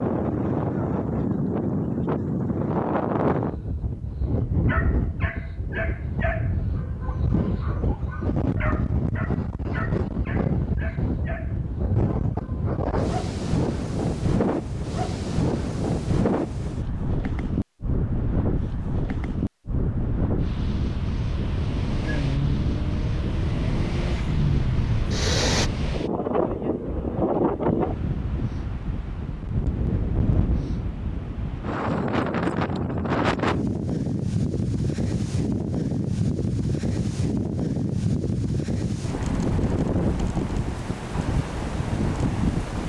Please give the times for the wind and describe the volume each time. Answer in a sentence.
The wind can be heard from 0.0 to 42.8 s, at a steady volume.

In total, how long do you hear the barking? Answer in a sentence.
You can hear the barking for 8 seconds altogether.